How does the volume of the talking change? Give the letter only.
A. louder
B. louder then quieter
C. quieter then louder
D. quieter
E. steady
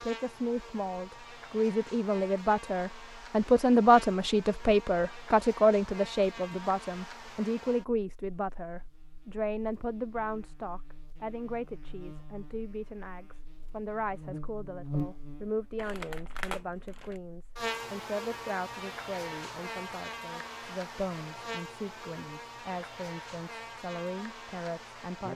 D.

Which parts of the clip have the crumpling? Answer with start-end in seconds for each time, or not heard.
15.8-17.2.